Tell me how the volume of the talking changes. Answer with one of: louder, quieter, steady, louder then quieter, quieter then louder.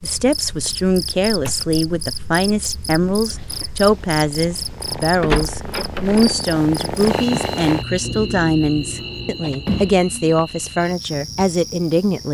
steady.